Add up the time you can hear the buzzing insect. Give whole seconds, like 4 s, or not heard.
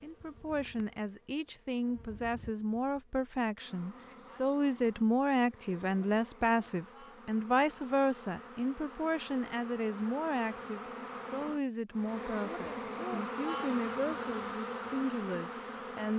16 s.